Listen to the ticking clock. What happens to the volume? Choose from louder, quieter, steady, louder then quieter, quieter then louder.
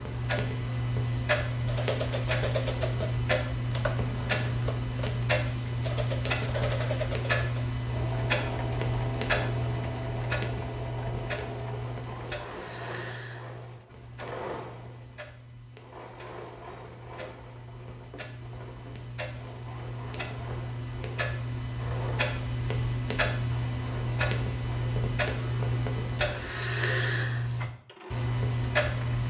quieter then louder.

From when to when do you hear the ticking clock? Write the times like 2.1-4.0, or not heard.
0.0-29.2.